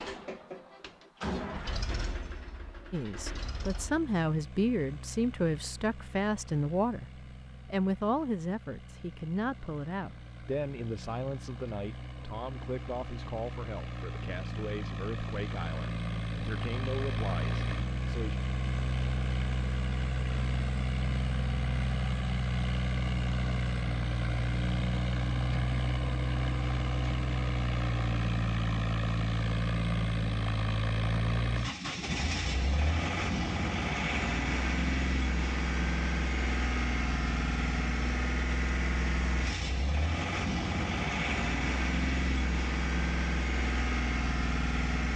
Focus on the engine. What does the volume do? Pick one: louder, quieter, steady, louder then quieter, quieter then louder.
louder.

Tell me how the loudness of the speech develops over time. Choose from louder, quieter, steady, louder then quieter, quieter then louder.
quieter.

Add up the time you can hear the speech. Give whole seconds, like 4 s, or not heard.
15 s.